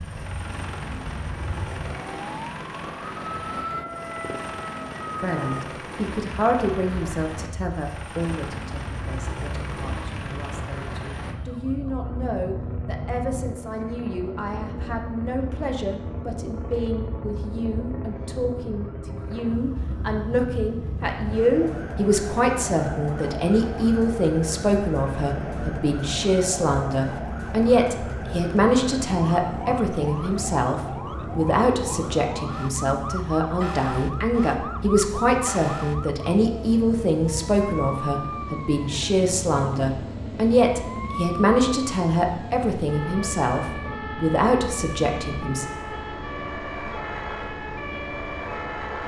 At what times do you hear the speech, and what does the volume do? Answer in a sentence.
You can hear the speech from 5.2 to 45.6 s, getting louder.